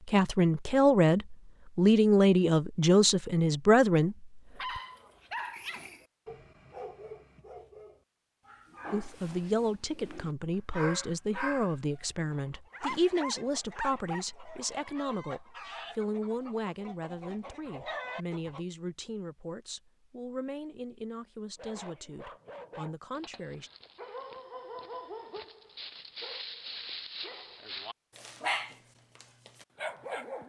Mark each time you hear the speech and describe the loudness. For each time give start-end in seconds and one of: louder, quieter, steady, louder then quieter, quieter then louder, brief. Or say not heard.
0.1-4.8 steady
8.9-23.7 quieter.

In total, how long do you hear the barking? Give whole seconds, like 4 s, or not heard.
19 s.